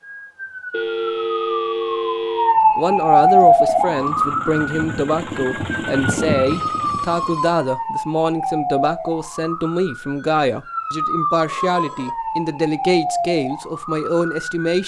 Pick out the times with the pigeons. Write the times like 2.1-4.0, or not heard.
not heard.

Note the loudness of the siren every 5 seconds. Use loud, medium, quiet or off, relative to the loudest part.
loud, medium, medium.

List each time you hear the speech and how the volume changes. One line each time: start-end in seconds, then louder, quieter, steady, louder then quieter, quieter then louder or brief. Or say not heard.
2.8-14.8 steady.